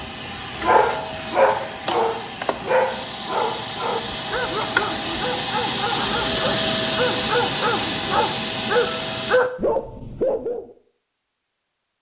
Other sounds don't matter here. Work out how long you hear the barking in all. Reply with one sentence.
The barking can be heard for 10 seconds in total.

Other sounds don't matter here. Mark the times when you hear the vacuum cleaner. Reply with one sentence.
You can hear the vacuum cleaner from 0.0 to 9.4 s.